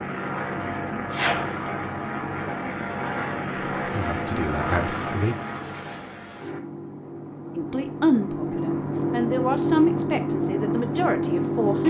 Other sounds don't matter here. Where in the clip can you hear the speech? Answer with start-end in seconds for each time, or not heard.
3.9-5.3, 7.5-11.8.